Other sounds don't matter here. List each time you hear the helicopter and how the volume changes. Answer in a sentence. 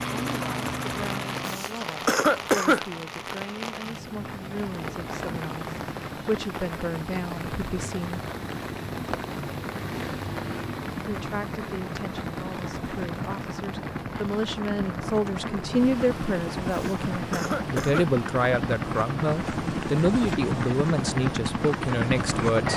The helicopter can be heard briefly from 0.0 to 1.6 s; and from 4.2 to 22.7 s, getting louder.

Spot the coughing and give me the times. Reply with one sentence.
The coughing can be heard from 1.4 to 2.9 s and from 16.7 to 18.1 s.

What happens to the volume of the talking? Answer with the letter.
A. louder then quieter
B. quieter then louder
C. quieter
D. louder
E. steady
D.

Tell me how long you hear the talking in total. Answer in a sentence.
The talking can be heard for 20 seconds in total.